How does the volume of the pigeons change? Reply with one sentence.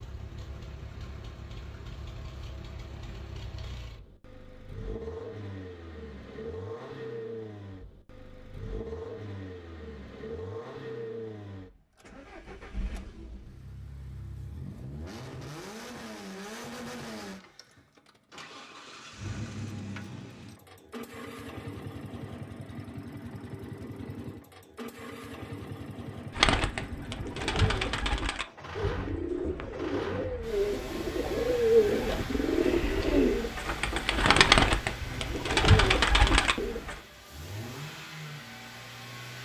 The loudness of the pigeons goes up.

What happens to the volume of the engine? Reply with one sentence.
The loudness of the engine stays about the same.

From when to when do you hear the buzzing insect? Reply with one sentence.
You can't hear the buzzing insect here.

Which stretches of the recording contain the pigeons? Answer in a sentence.
The pigeons can be heard from 26.4 to 37.0 s.